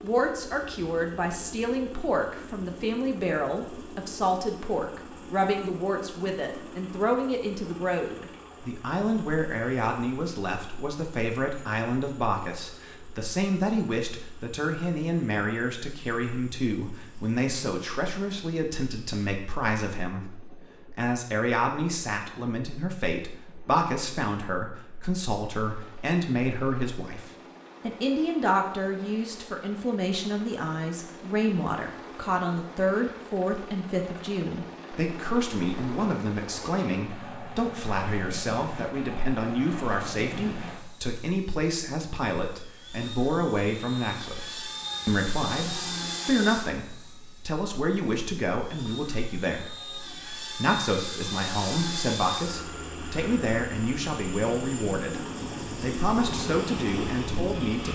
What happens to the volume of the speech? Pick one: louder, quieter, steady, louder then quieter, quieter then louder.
steady.